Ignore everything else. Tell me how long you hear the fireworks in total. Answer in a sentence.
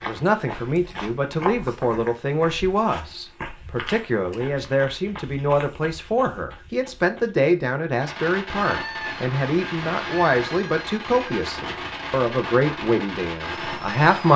The fireworks can be heard for 6 seconds in total.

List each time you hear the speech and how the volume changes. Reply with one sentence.
You can hear the speech from 0.0 to 14.3 s, at a steady volume.